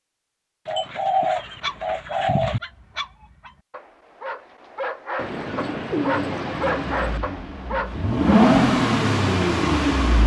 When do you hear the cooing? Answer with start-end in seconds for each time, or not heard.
0.7-2.6, 5.2-7.2.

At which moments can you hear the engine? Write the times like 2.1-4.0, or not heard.
6.1-10.2.